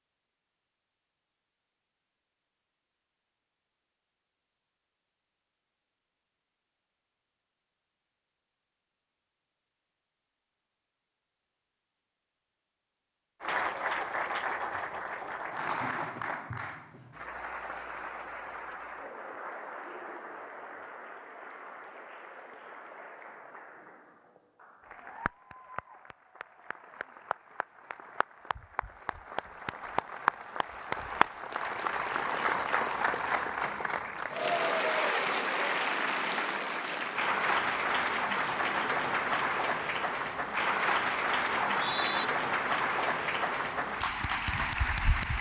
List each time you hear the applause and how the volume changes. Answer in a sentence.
The applause can be heard from 13.4 to 45.3 s, getting quieter then louder.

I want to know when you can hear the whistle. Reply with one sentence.
The whistle can be heard from 41.5 to 42.2 s.